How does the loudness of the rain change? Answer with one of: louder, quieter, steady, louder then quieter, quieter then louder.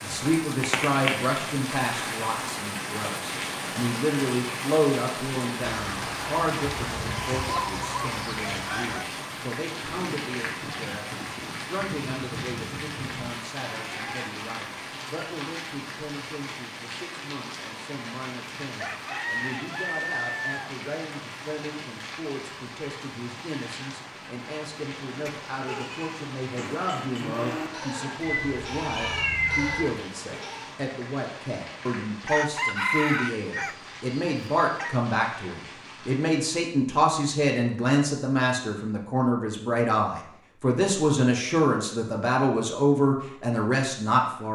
quieter.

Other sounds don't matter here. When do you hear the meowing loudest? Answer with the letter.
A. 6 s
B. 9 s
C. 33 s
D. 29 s
D.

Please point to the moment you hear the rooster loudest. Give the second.
33 s.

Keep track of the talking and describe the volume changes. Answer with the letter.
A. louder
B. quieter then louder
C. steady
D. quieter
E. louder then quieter
B.